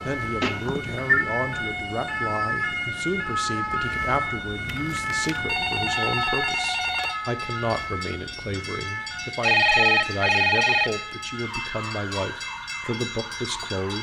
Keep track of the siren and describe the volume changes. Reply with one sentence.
The loudness of the siren goes down.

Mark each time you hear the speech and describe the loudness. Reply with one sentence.
You can hear the speech from 0.0 to 13.9 s, at a steady volume.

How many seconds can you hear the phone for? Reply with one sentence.
The phone can be heard for 5 seconds in total.